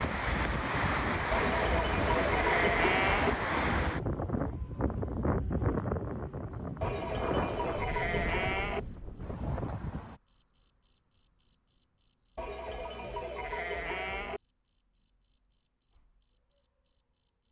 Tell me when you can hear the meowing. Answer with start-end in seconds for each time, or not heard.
not heard.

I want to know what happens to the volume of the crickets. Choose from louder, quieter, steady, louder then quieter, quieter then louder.
louder then quieter.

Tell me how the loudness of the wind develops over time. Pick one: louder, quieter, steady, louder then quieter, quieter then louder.
quieter.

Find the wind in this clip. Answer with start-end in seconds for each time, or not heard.
0.0-10.2.